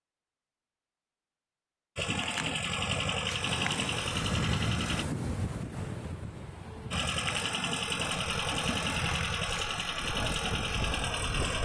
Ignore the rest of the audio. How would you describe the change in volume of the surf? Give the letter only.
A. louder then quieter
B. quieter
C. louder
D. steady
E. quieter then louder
E.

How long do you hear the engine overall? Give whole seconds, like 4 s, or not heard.
8 s.